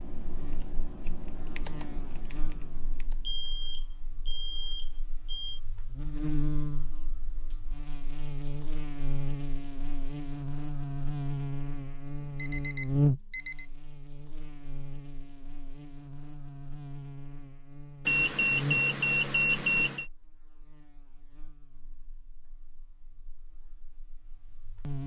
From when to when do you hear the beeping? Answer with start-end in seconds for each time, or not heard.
3.2-5.6, 12.2-13.7, 18.1-20.1.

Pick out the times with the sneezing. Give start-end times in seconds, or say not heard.
not heard.